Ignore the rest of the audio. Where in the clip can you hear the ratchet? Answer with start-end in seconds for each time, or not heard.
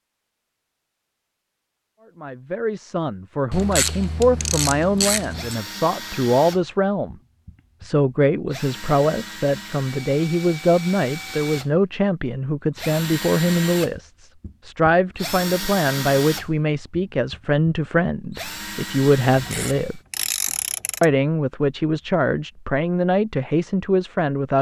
3.5-5.5, 19.4-21.1.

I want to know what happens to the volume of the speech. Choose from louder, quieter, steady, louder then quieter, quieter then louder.
steady.